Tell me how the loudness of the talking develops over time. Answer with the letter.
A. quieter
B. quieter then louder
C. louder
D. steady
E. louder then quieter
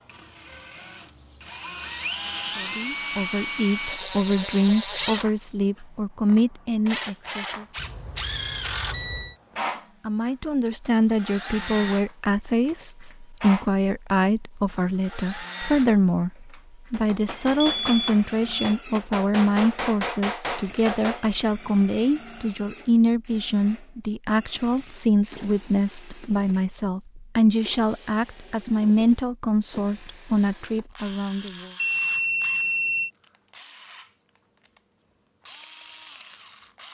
D.